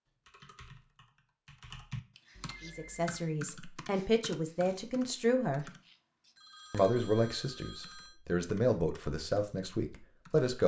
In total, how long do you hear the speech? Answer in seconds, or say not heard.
7 s.